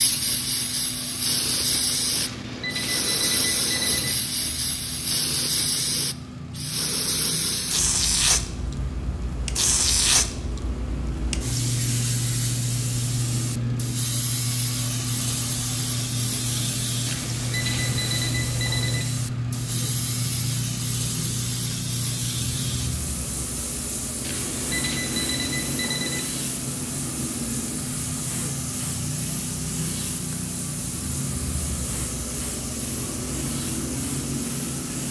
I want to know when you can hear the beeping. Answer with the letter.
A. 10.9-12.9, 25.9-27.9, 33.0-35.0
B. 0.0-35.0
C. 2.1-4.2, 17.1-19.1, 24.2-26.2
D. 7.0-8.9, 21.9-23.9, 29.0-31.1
C.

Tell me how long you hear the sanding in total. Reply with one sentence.
The sanding can't be heard in this clip.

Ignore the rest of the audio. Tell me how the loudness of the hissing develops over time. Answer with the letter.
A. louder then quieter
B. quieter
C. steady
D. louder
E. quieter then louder
B.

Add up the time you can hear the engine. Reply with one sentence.
The engine can be heard for 35 seconds in total.